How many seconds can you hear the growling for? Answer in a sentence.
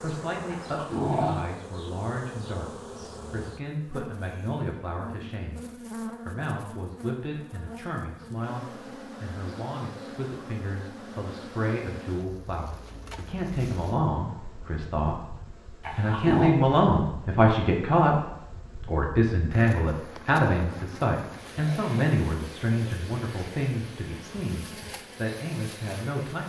The growling can be heard for 2 seconds in total.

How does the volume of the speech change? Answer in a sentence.
The volume of the speech goes up, then down.